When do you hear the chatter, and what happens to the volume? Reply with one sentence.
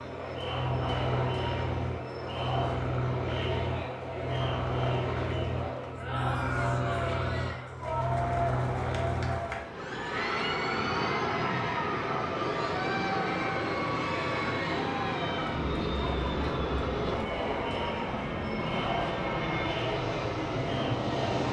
You can hear the chatter from 0.0 to 21.4 s, at a steady volume.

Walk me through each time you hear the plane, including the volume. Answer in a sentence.
You can hear the plane from 0.0 to 21.4 s, at a steady volume.